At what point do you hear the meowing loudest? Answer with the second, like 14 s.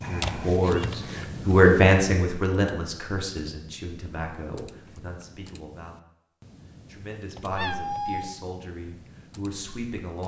8 s.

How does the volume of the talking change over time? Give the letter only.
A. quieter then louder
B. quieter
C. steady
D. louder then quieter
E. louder
B.